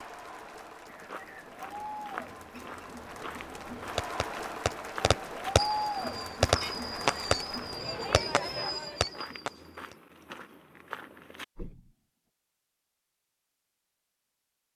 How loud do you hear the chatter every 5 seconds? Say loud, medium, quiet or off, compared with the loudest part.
medium, loud, off.